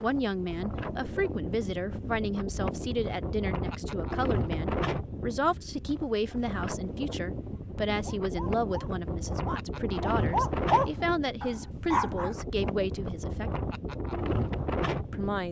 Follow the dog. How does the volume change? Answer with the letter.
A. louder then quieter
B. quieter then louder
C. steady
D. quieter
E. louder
A.